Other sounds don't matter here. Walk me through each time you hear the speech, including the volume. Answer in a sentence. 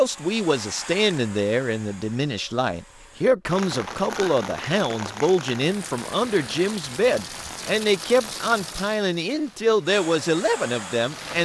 The speech can be heard from 0.0 to 11.4 s, at a steady volume.